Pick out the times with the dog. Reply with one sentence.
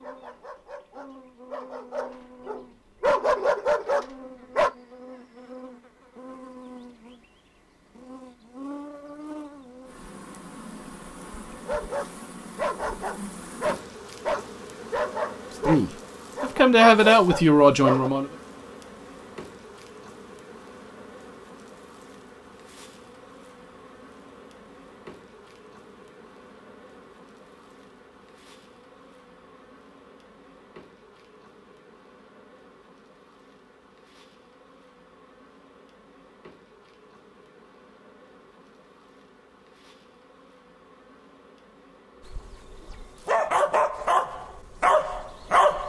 You can hear the dog from 0.0 to 4.7 s, from 11.7 to 18.1 s and from 42.2 to 45.8 s.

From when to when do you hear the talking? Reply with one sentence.
You can hear the talking from 15.7 to 18.3 s.